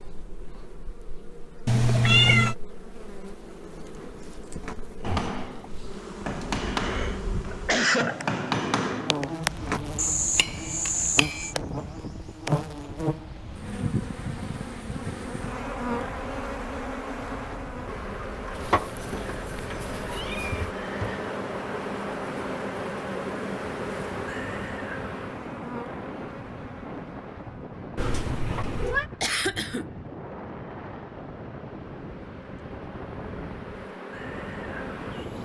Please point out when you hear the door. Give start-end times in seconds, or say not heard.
not heard.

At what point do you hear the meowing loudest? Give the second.
2 s.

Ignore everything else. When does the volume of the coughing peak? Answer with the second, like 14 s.
8 s.